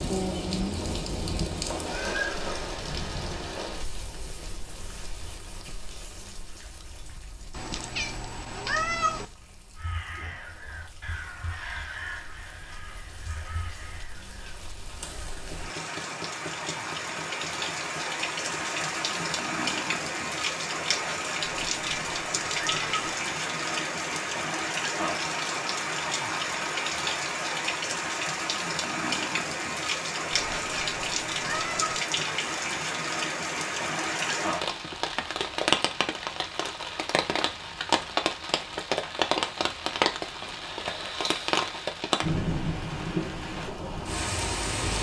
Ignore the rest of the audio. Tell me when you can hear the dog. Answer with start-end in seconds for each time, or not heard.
not heard.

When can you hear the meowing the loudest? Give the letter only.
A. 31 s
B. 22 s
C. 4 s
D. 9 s
D.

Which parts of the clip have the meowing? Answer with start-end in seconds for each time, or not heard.
7.5-9.2, 21.4-23.2, 30.3-32.0.